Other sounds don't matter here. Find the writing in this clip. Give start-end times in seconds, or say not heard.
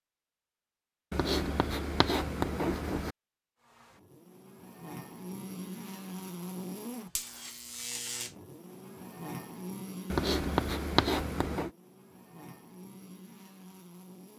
1.1-3.1, 10.1-11.7.